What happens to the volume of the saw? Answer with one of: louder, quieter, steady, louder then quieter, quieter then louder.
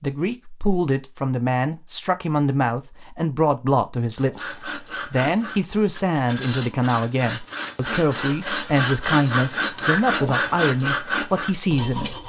louder.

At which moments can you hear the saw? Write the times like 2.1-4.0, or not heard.
4.2-12.2.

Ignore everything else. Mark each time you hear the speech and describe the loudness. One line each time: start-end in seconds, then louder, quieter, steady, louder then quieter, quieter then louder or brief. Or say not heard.
0.0-12.2 steady.